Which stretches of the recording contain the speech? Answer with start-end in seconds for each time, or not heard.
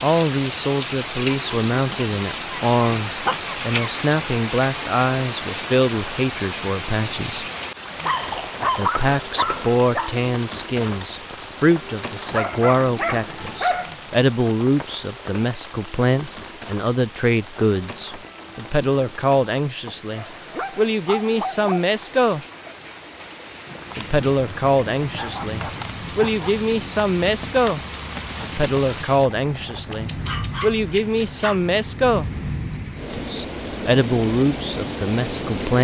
0.0-7.5, 8.8-22.4, 23.9-27.8, 28.4-32.3, 33.1-35.8.